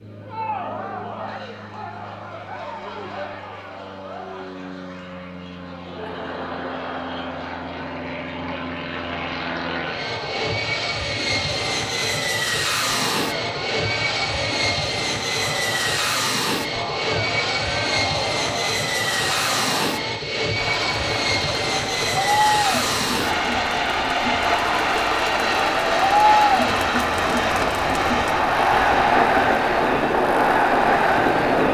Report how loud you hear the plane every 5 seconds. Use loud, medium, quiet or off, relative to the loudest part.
quiet, medium, loud, loud, loud, loud, loud.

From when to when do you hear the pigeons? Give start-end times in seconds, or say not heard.
not heard.